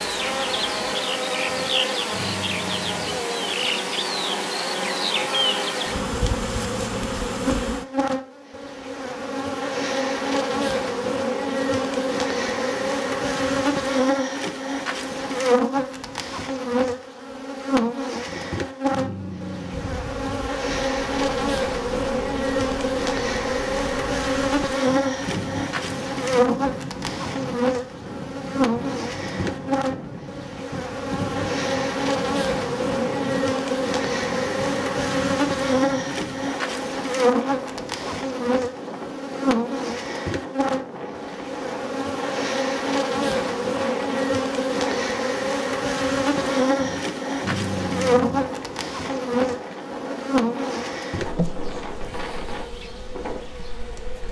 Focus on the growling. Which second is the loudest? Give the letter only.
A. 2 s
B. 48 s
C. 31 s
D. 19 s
B.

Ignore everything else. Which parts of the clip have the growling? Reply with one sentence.
The growling can be heard from 1.4 to 3.2 s, from 18.2 to 20.0 s and from 46.8 to 48.5 s.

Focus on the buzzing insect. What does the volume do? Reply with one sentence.
The volume of the buzzing insect stays about the same.